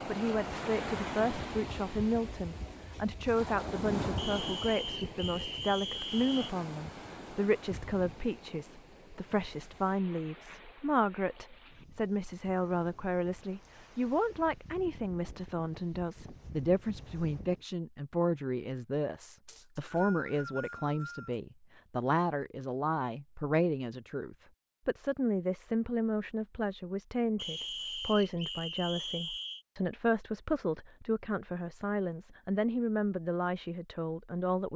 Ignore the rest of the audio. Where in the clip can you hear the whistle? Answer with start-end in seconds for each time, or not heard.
4.2-6.5, 19.4-21.4, 27.4-29.6.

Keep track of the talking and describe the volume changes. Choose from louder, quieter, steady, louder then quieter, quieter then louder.
steady.